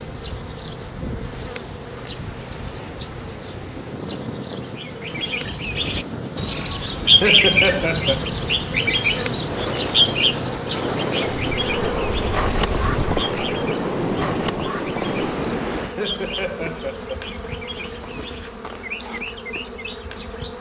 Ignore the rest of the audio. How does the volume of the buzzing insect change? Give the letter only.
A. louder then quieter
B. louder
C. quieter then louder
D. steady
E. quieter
A.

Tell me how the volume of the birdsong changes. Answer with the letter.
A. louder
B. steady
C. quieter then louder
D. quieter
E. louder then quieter
D.